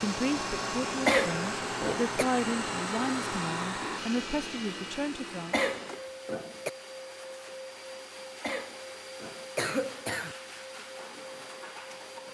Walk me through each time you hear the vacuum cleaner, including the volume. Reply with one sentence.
You can hear the vacuum cleaner from 0.0 to 12.3 s, getting quieter.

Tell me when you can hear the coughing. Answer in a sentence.
You can hear the coughing from 1.1 to 2.2 s, from 5.5 to 6.7 s and from 8.4 to 10.3 s.